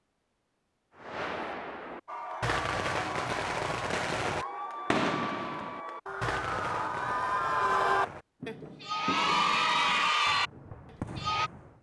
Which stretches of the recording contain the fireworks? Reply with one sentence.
You can hear the fireworks from 0.9 to 11.7 s.